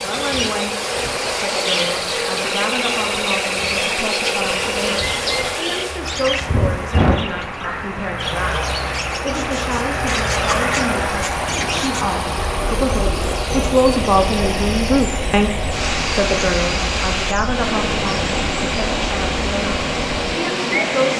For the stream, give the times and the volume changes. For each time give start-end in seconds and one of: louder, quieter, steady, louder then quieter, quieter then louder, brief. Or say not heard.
0.0-21.1 steady.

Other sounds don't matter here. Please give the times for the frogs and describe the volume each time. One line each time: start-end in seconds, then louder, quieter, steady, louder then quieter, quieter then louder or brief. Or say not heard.
not heard.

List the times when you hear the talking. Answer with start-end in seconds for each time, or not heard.
0.0-0.8, 1.4-21.1.